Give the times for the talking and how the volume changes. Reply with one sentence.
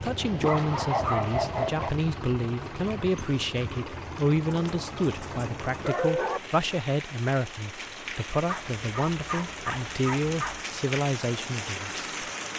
The talking can be heard from 0.0 to 12.1 s, at a steady volume.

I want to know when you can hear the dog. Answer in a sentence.
You can hear the dog from 0.0 to 1.9 s, from 4.5 to 6.4 s and from 8.4 to 10.6 s.